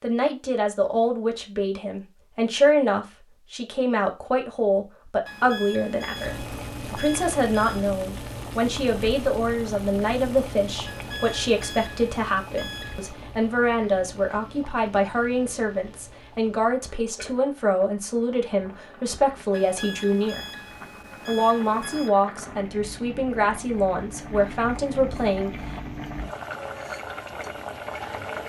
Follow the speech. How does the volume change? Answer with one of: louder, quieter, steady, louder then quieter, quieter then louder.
steady.